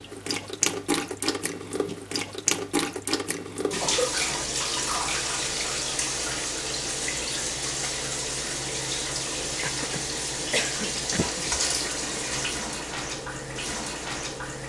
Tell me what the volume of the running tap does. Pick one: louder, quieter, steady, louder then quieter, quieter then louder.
steady.